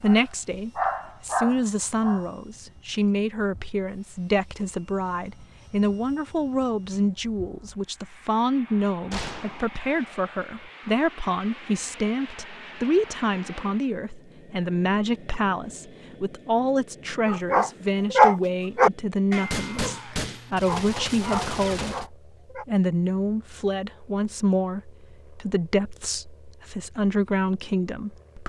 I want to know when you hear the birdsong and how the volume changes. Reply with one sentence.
The birdsong can't be heard in this clip.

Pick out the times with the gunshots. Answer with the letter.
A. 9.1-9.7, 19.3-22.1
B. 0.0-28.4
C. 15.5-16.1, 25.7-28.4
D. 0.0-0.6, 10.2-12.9
A.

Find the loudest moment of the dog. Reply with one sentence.
The loudest moment of the dog is at 18 seconds.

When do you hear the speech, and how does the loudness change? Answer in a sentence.
The speech can be heard from 0.0 to 28.4 s, at a steady volume.